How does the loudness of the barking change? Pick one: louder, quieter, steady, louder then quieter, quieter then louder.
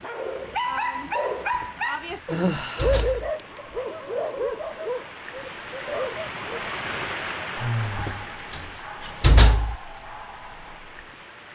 quieter.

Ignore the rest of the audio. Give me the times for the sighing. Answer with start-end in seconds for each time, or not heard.
2.3-3.0, 7.5-8.2.